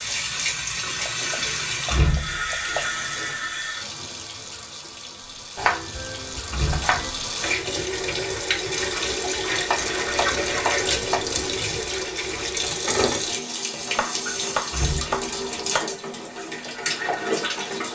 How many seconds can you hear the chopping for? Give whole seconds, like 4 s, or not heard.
7 s.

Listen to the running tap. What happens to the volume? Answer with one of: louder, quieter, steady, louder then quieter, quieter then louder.
quieter then louder.